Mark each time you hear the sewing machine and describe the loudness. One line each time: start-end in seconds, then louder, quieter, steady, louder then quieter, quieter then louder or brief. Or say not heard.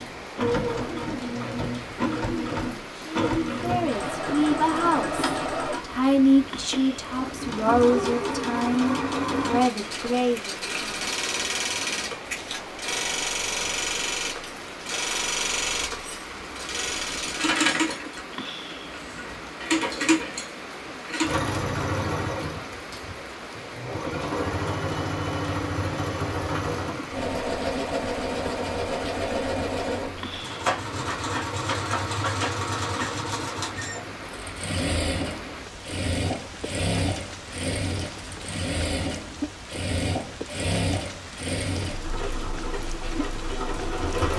0.0-44.3 steady.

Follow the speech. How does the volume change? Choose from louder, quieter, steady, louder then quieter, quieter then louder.
steady.